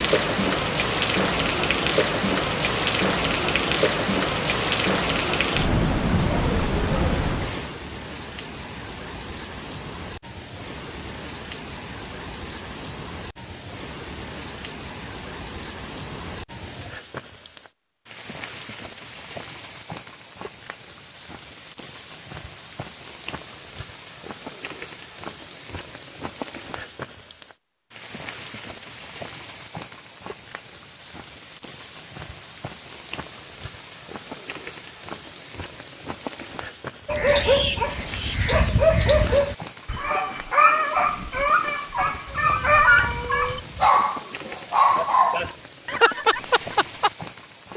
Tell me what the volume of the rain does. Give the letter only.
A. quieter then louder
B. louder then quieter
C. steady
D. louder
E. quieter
E.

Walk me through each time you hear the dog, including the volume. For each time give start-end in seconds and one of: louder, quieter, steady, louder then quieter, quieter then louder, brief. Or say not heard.
37.0-47.1 steady.